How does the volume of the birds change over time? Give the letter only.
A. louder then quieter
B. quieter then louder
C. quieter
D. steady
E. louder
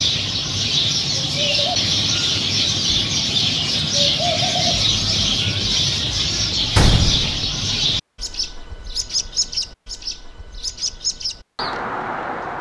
C.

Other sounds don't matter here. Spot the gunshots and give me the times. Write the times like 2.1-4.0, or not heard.
6.8-7.5.